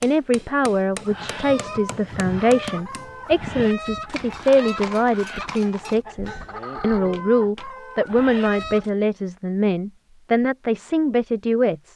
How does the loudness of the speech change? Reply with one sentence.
The loudness of the speech stays about the same.